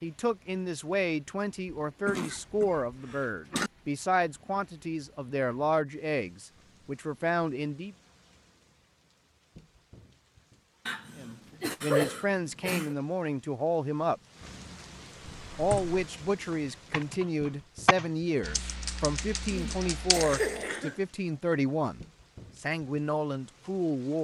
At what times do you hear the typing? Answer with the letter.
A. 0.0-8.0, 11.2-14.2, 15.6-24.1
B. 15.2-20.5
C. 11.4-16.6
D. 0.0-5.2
B.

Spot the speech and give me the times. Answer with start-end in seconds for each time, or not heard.
0.0-8.0, 11.2-14.2, 15.6-24.1.